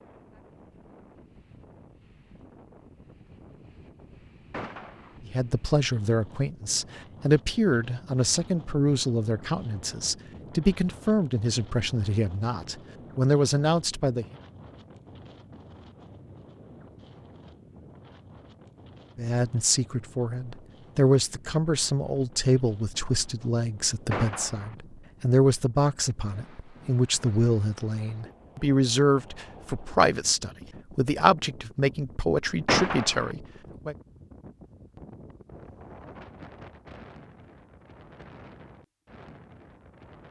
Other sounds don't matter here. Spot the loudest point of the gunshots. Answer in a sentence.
The volume of the gunshots peaks at 33 seconds.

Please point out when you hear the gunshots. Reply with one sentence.
You can hear the gunshots from 4.5 to 5.2 s, from 24.1 to 24.8 s and from 32.6 to 33.4 s.